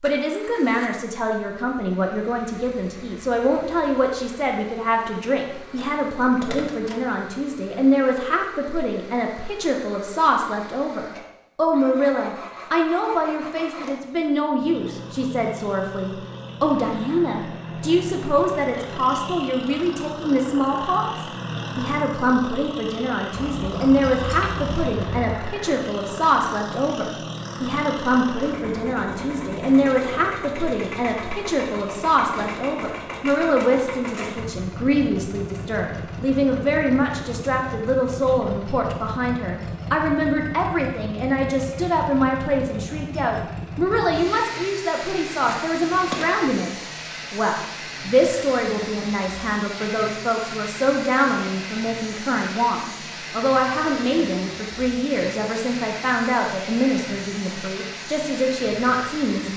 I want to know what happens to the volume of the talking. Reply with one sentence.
The volume of the talking stays about the same.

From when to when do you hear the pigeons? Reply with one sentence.
The pigeons can't be heard in this clip.